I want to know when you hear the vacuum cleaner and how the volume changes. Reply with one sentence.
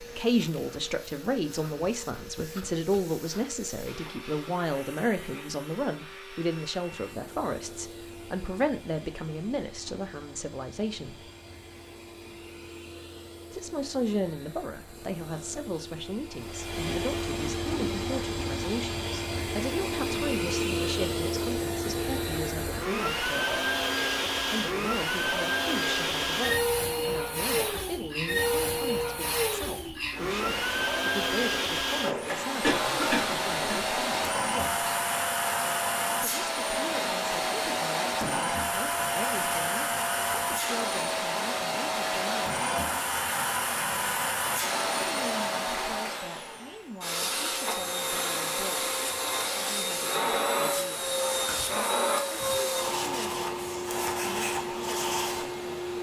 The vacuum cleaner can be heard from 0.0 to 55.9 s, getting louder.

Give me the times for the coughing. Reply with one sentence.
You can hear the coughing from 32.6 to 33.9 s.